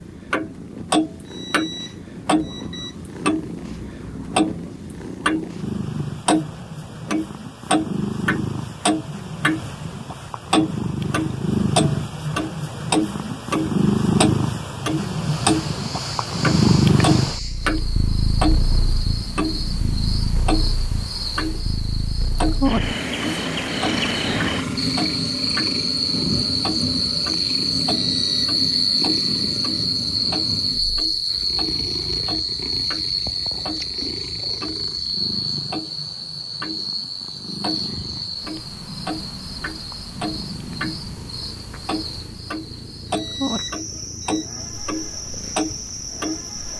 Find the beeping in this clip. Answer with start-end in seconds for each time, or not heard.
1.2-3.0, 28.1-28.6, 43.0-44.5.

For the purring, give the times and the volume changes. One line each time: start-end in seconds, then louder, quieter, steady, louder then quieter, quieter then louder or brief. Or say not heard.
0.0-46.7 louder then quieter.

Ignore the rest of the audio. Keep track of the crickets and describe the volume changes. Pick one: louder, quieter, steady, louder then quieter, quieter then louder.
louder then quieter.